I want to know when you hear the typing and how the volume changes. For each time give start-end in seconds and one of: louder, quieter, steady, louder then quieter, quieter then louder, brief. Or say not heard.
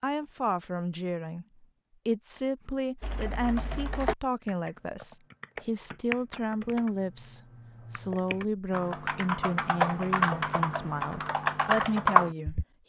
3.0-12.7 quieter then louder.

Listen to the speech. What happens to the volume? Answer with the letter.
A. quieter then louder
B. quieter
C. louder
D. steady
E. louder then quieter
D.